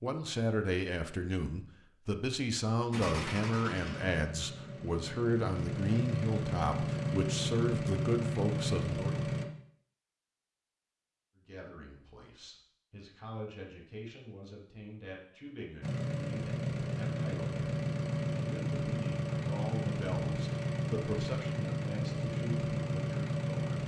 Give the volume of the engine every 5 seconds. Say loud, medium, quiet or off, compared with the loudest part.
medium, loud, off, loud, loud.